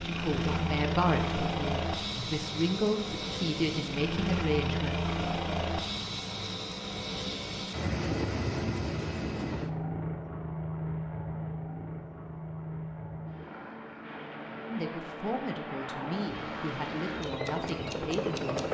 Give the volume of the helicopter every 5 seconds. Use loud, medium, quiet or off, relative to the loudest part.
loud, loud, medium, loud.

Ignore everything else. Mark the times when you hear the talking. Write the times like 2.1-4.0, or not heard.
0.0-5.0, 14.7-18.6.